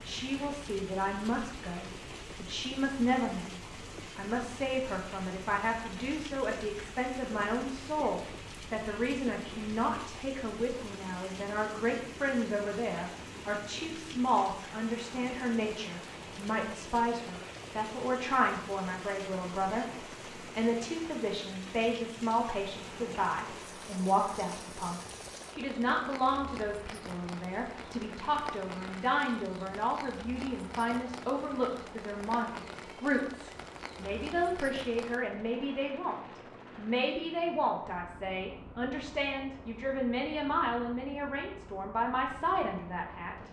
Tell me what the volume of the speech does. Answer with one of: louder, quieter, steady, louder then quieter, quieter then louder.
steady.